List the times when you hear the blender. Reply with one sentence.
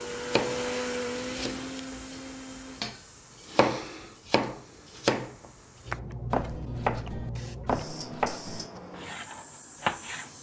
You can hear the blender from 0.0 to 2.9 s.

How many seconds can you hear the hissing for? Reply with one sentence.
The hissing can be heard for 10 seconds in total.